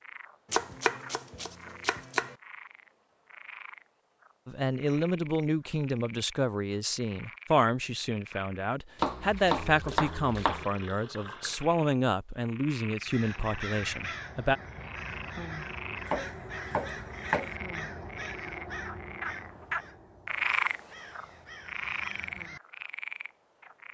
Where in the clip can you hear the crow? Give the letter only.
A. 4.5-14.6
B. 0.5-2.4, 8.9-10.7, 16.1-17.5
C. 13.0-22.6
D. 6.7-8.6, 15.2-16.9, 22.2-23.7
C.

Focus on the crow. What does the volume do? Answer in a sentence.
The volume of the crow goes down.